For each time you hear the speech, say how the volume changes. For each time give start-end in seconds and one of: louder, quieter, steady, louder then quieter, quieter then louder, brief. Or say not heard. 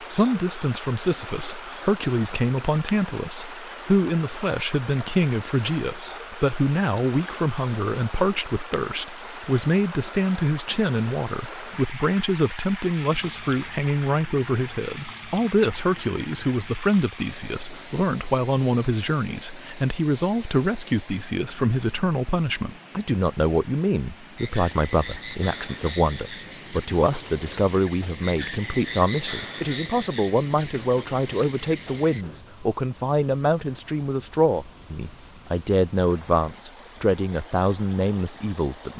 0.0-38.9 steady.